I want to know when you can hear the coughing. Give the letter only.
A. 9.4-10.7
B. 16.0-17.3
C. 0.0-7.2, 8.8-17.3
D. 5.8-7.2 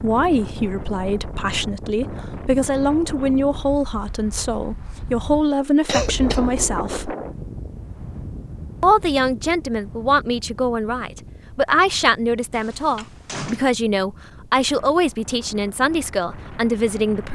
D.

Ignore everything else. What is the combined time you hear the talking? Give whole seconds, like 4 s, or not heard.
16 s.